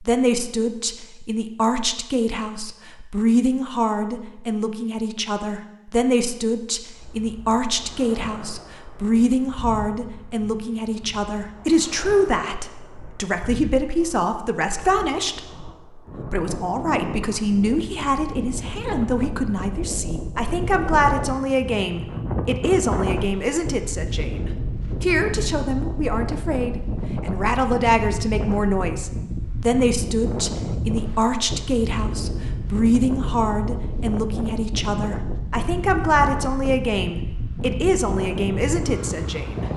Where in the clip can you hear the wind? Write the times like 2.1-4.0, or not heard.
6.9-39.7.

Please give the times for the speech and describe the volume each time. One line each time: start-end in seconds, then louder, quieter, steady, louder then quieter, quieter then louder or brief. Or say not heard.
0.0-39.6 steady.